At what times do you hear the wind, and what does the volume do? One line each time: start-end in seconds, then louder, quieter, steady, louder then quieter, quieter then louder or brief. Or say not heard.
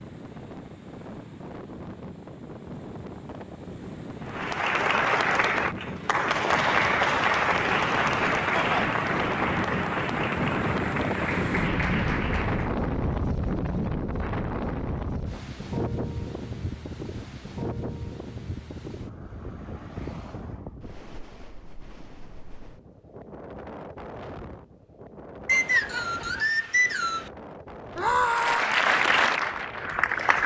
0.0-30.4 louder then quieter.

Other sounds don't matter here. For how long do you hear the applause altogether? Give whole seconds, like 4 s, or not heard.
11 s.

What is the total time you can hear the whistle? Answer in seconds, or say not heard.
2 s.